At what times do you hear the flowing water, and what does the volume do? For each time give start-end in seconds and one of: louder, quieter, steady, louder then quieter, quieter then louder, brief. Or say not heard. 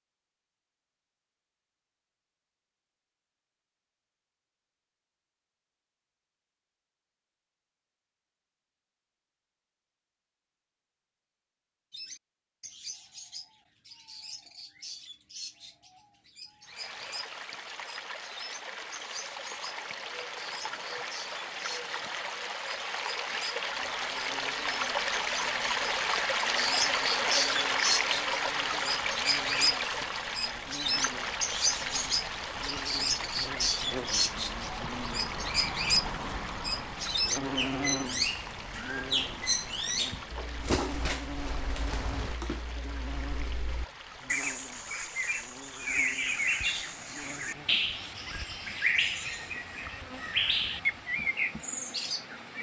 16.6-52.5 louder then quieter.